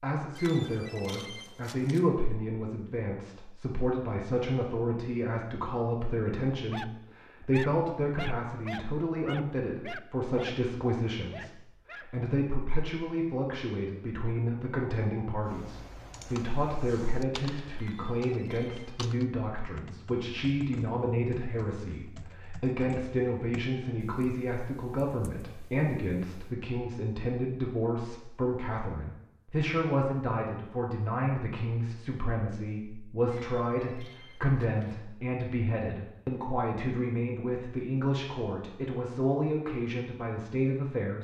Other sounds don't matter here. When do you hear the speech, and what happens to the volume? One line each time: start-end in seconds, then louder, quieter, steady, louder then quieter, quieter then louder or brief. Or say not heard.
0.0-41.1 steady.